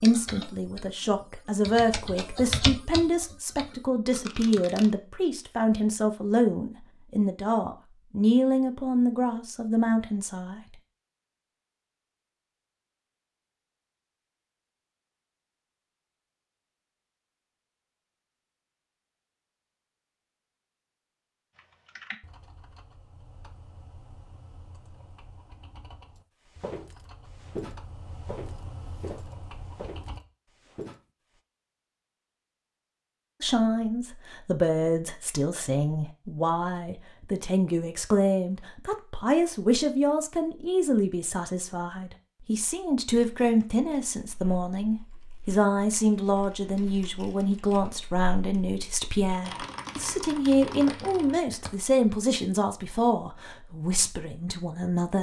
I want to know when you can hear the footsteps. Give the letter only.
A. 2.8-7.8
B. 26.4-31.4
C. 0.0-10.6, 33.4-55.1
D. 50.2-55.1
B.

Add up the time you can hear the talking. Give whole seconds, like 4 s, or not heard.
32 s.